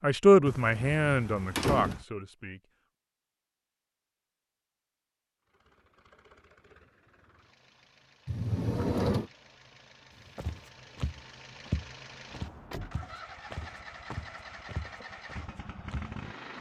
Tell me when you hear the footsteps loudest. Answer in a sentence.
The loudest moment of the footsteps is at 12 seconds.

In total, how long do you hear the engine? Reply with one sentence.
You can hear the engine for 11 seconds altogether.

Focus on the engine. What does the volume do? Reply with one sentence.
The volume of the engine goes up.